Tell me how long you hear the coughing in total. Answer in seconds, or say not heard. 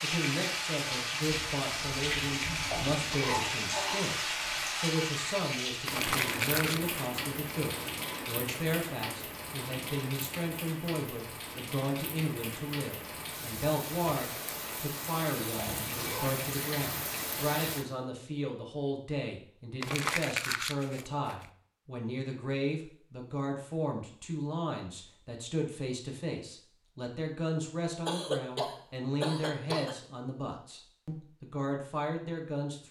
4 s.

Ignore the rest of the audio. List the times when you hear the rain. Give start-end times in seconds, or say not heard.
0.0-17.9.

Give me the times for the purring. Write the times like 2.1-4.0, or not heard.
not heard.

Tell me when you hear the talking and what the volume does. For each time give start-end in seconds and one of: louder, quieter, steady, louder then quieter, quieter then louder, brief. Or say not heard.
0.0-32.8 steady.